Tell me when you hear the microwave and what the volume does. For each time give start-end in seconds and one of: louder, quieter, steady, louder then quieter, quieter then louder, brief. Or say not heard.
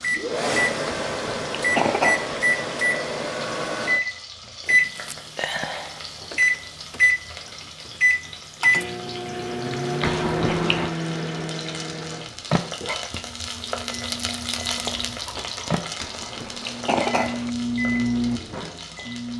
0.0-19.3 quieter then louder.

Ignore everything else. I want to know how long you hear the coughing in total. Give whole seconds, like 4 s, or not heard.
4 s.